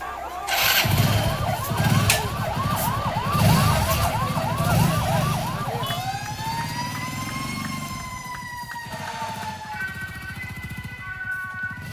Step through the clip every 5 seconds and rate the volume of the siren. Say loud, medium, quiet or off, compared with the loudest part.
loud, loud, medium.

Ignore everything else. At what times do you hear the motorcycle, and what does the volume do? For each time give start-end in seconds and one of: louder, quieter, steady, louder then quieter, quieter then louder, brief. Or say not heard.
0.0-11.8 quieter.